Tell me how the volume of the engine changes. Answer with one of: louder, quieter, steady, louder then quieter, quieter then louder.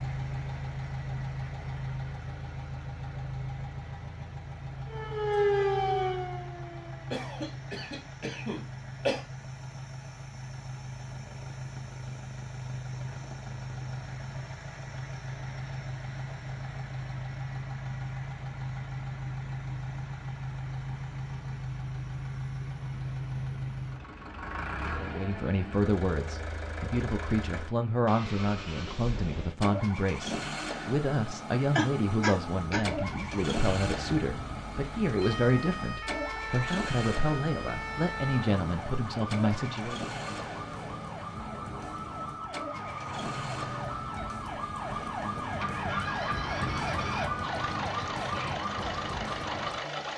steady.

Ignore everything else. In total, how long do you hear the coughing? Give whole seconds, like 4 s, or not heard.
3 s.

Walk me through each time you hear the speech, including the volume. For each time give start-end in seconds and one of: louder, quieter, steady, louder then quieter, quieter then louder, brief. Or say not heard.
24.9-40.0 steady.